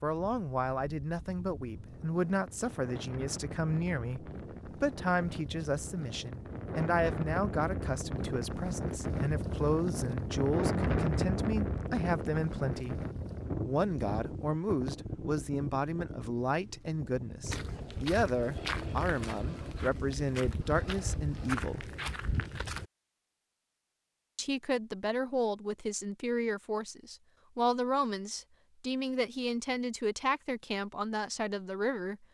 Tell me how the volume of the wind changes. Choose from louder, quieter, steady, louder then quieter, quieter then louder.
louder then quieter.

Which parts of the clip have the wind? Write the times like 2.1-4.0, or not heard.
0.0-17.6.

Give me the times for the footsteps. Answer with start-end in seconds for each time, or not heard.
17.4-22.9.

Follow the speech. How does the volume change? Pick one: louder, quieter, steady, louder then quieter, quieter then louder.
steady.